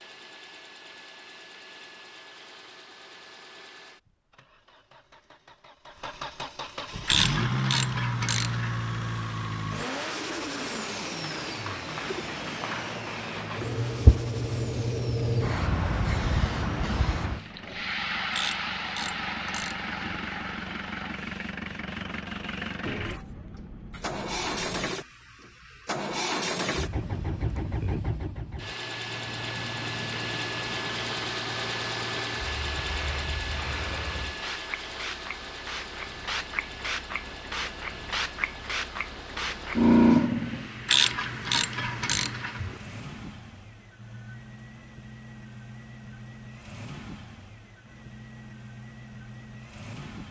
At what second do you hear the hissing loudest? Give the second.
40 s.